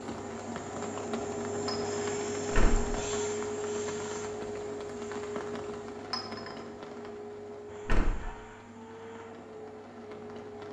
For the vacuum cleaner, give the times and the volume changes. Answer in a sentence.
The vacuum cleaner can be heard from 0.0 to 10.6 s, getting quieter.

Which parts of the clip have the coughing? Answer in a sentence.
The coughing can't be heard in this clip.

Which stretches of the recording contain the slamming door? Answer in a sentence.
The slamming door can be heard from 2.5 to 3.0 s and from 7.8 to 8.3 s.